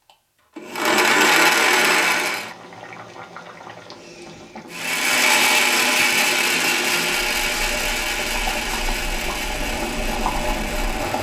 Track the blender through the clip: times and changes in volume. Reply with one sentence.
You can hear the blender briefly from 0.1 to 2.5 s; and from 4.7 to 11.1 s, getting quieter.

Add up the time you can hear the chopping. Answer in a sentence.
You can't hear the chopping here.